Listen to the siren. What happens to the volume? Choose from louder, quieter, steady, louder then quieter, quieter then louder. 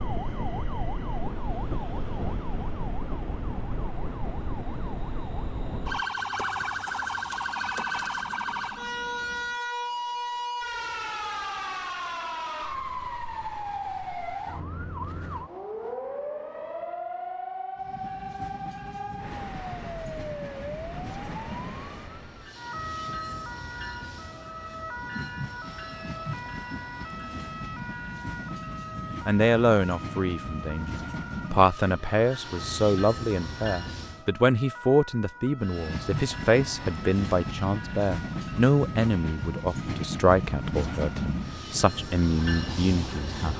quieter.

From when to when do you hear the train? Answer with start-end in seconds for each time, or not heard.
0.0-9.6, 17.8-34.2, 35.6-43.5.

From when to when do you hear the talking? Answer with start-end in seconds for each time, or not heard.
29.2-43.5.